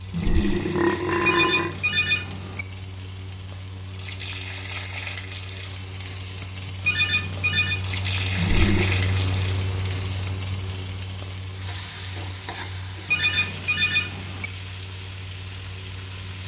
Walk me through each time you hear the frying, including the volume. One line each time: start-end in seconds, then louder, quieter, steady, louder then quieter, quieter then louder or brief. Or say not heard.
0.0-16.4 louder then quieter.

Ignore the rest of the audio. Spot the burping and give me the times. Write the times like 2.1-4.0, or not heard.
0.1-1.8, 8.3-8.9.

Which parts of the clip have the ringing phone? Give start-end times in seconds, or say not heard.
1.2-2.6, 6.8-7.8, 13.1-14.5.